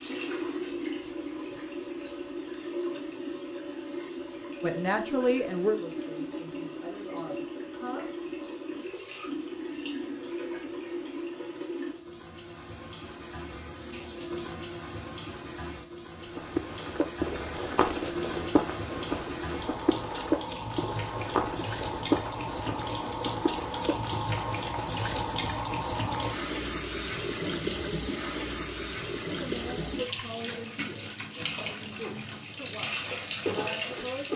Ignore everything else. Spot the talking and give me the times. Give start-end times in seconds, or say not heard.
4.6-8.1, 29.3-34.3.